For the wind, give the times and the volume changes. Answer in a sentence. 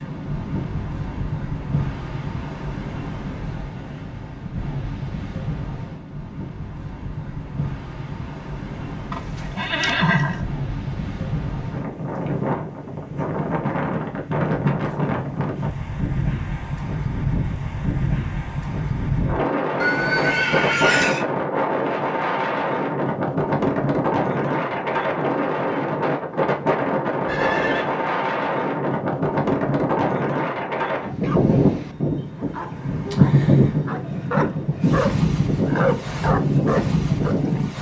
The wind can be heard from 0.0 to 37.7 s, getting louder.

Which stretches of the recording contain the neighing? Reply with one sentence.
The neighing can be heard from 9.1 to 10.4 s, from 19.8 to 21.2 s and from 27.2 to 27.9 s.